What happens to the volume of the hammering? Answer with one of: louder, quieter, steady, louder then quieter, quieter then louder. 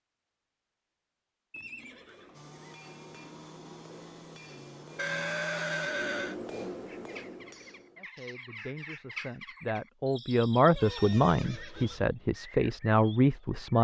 louder.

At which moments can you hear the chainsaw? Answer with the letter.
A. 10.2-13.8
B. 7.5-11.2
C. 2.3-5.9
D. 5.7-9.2
C.